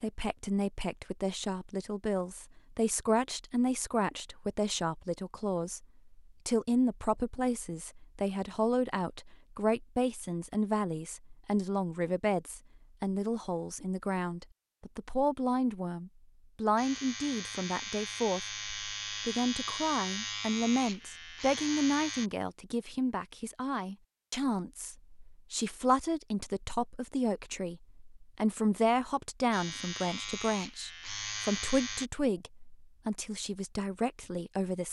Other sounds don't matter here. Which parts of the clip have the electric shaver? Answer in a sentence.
You can hear the electric shaver from 16.8 to 22.3 s and from 29.5 to 32.1 s.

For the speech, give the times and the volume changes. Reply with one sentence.
You can hear the speech from 0.0 to 34.8 s, at a steady volume.